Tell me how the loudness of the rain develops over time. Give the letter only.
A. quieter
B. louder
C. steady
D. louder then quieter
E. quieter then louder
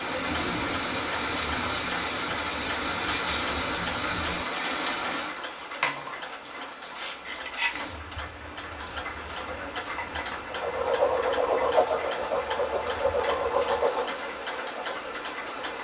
A.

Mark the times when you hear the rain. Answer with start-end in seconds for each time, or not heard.
0.0-15.7.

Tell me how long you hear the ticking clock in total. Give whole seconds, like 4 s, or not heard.
16 s.